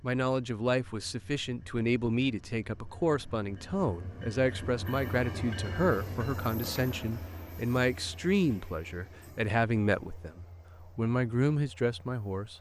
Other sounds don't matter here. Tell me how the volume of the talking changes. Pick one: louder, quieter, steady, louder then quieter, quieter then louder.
steady.